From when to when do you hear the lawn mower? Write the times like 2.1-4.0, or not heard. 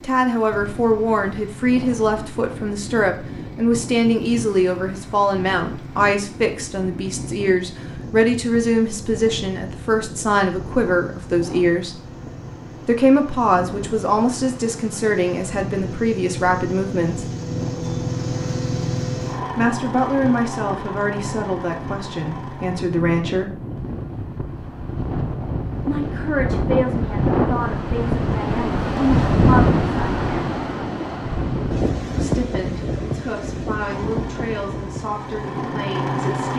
0.0-22.9, 33.9-36.5.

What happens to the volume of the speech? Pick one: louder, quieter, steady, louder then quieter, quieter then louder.
quieter.